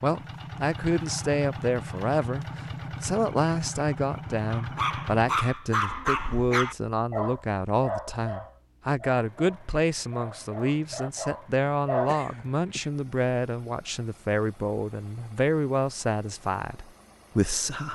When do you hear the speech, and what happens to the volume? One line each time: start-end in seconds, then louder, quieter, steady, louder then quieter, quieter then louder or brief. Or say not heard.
0.0-17.8 steady.